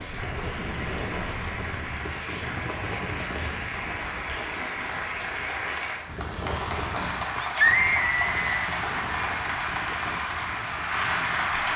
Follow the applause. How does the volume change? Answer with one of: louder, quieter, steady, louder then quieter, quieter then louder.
louder.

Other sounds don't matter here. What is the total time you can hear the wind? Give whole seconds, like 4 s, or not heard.
12 s.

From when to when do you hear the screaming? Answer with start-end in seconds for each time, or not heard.
7.4-8.7.